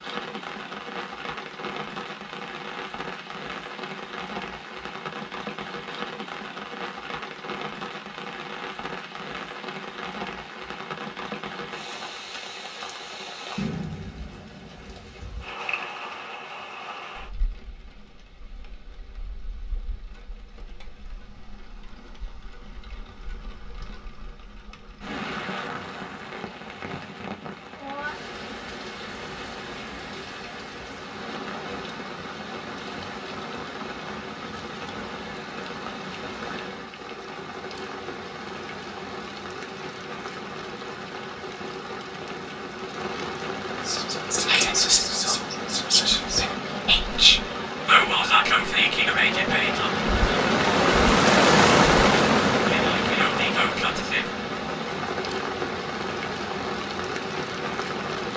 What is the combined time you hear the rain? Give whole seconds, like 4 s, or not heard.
58 s.